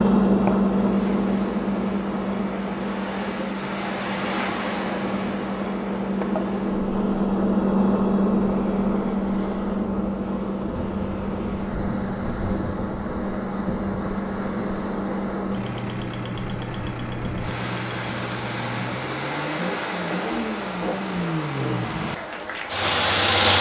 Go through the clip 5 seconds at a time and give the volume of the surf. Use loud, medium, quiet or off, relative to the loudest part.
loud, medium, loud, loud, loud.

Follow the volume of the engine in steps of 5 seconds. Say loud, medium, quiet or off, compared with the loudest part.
loud, loud, medium, medium, loud.